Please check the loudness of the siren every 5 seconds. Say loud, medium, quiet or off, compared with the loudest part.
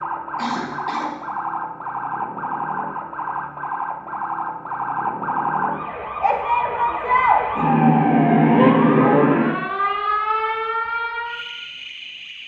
medium, loud, medium.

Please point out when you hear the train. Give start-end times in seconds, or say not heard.
not heard.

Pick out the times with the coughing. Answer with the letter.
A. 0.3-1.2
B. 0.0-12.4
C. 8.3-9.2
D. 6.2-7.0
A.